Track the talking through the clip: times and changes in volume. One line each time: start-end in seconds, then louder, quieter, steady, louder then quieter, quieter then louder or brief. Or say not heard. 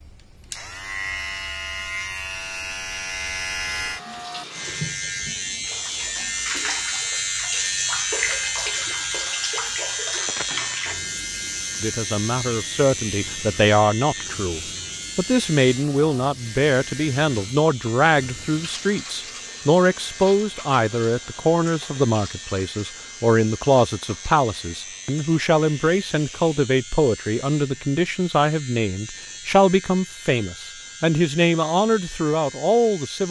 11.8-33.2 steady.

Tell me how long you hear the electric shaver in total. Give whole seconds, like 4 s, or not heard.
33 s.